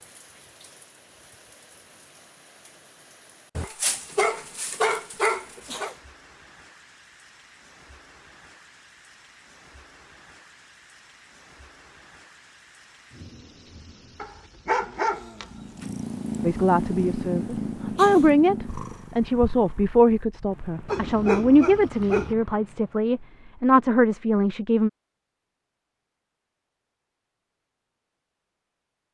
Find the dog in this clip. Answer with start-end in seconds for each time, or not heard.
3.5-5.9, 14.2-15.9, 20.9-22.4.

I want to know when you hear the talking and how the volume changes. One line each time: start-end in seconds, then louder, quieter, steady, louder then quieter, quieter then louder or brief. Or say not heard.
16.4-24.9 steady.